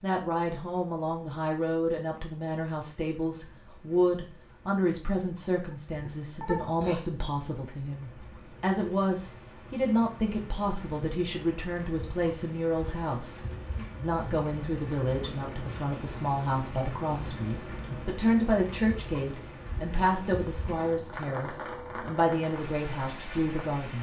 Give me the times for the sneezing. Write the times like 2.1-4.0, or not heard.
5.5-7.0.